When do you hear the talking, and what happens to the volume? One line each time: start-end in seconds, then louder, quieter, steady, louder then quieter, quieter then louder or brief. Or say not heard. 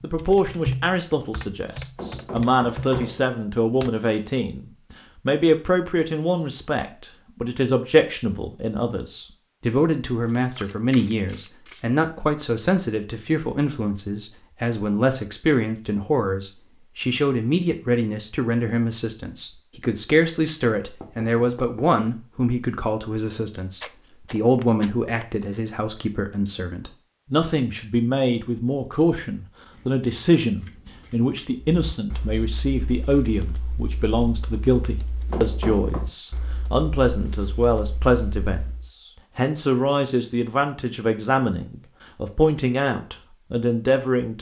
0.0-44.3 steady.